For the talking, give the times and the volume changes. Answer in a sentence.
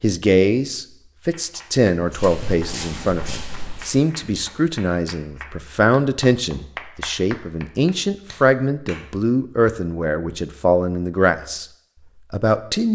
You can hear the talking from 0.0 to 11.7 s, at a steady volume; and briefly from 12.3 to 12.8 s.